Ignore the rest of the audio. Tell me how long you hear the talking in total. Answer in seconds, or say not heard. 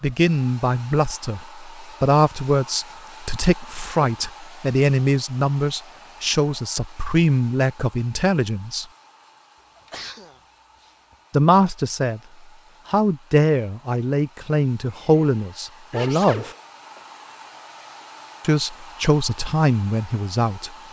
16 s.